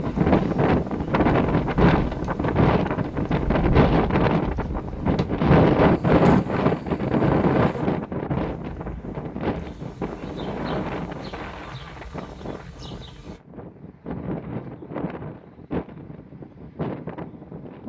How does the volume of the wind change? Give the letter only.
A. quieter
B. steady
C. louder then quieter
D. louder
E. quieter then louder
A.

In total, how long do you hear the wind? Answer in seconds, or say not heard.
18 s.